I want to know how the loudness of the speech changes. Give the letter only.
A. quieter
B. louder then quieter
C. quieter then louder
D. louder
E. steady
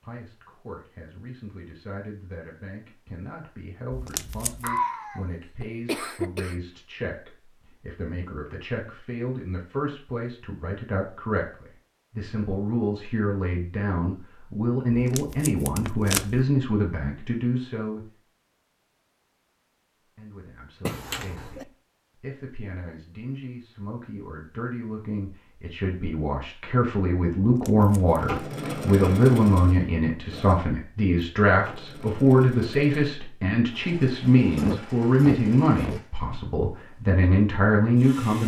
D.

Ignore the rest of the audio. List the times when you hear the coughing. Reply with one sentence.
The coughing can be heard from 4.6 to 6.5 s, from 20.9 to 21.6 s and from 34.5 to 36.0 s.